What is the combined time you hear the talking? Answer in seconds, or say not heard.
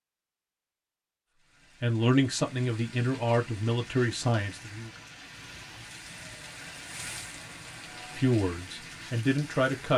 5 s.